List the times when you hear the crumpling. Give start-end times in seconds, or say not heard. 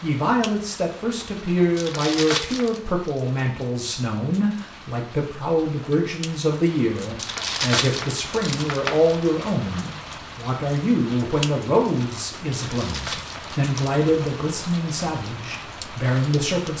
1.8-2.8, 7.2-9.2, 12.6-14.1.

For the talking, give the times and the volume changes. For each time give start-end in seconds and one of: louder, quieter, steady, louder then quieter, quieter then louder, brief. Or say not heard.
0.0-16.7 steady.